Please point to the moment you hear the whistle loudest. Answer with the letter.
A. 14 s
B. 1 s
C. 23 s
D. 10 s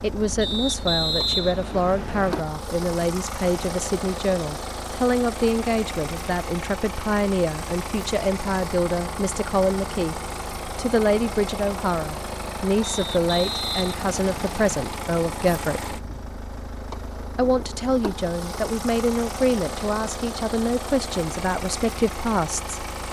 B.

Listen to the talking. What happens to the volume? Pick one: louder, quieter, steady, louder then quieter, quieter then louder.
steady.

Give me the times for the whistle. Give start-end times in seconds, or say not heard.
0.4-2.4, 12.8-14.8.